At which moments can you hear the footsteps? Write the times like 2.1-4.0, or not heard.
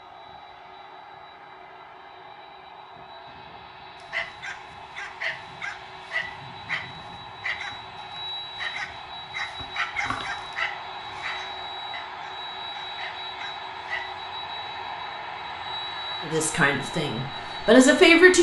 not heard.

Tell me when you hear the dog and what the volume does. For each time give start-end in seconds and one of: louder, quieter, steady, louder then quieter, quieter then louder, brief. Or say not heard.
3.5-14.2 quieter.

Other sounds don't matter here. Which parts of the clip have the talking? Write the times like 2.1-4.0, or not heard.
16.2-18.3.